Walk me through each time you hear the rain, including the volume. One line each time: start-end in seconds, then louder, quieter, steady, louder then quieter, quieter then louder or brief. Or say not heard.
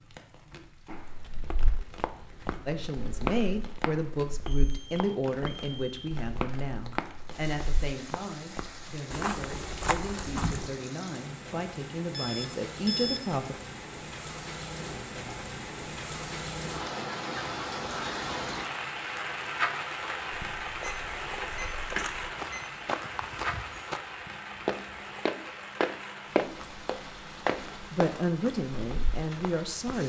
0.0-30.0 louder then quieter.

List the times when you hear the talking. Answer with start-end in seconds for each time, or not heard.
2.6-13.6, 27.9-30.0.